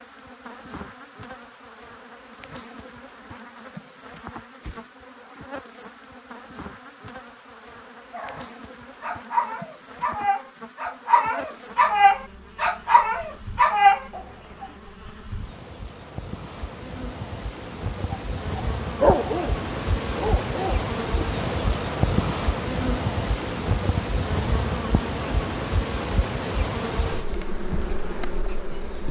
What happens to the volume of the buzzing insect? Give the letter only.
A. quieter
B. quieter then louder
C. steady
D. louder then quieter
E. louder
E.